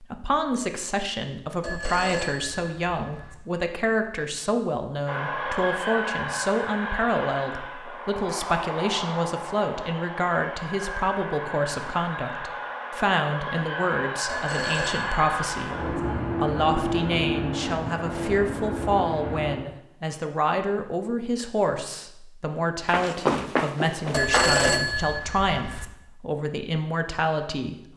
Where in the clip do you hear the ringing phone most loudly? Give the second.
25 s.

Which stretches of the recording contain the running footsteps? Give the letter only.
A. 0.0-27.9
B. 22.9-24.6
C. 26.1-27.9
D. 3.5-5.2
B.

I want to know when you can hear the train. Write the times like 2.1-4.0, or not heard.
5.0-19.6.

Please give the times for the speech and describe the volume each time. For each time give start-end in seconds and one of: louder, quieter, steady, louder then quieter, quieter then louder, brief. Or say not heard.
0.0-27.9 steady.